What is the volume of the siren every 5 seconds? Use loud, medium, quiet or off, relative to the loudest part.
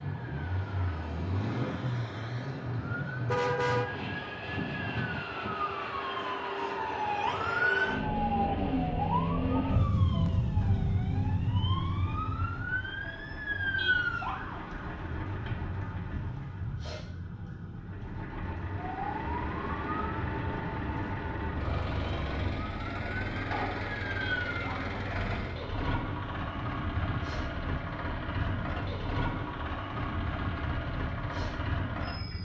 medium, loud, loud, medium, medium, quiet, quiet.